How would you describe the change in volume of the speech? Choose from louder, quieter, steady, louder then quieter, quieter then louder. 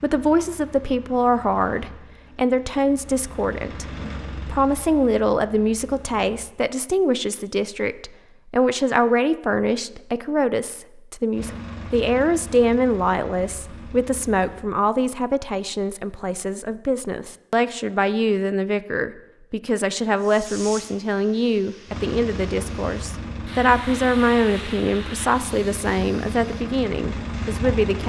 steady.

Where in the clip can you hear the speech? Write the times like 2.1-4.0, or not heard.
0.0-28.0.